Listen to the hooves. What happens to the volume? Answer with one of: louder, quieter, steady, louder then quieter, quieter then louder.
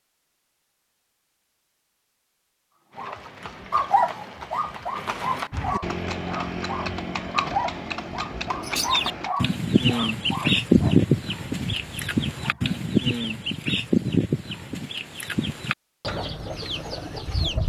louder.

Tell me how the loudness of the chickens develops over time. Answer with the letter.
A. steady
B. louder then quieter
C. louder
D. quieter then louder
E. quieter
E.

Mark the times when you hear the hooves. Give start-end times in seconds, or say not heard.
2.9-9.3.